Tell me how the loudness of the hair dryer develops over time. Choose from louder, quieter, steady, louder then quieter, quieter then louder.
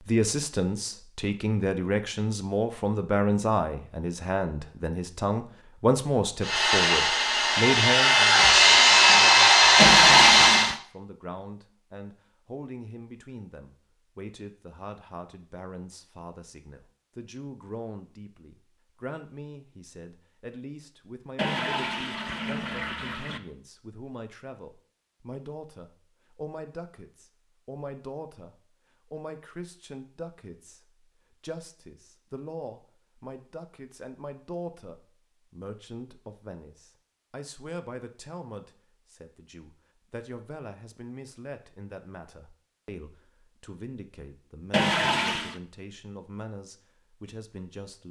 louder.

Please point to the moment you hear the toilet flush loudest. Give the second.
10 s.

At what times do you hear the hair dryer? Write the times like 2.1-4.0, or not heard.
6.4-10.8.